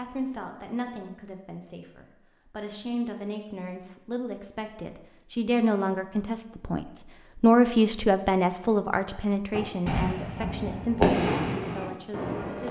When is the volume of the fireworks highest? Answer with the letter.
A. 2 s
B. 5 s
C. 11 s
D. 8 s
C.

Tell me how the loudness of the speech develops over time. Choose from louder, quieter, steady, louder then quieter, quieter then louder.
louder then quieter.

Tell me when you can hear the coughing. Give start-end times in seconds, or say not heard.
not heard.